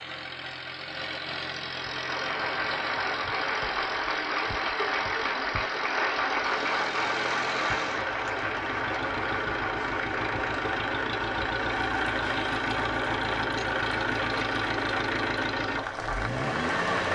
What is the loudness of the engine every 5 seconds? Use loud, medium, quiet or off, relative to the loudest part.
medium, medium, loud, loud.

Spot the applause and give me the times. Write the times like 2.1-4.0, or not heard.
1.8-17.1.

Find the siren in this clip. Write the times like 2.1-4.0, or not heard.
not heard.